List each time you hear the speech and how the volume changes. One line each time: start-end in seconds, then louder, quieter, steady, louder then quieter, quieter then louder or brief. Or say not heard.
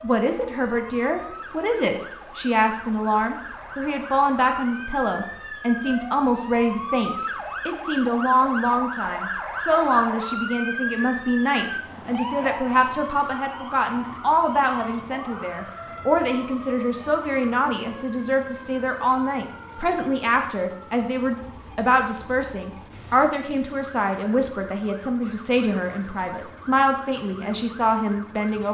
0.0-28.7 steady.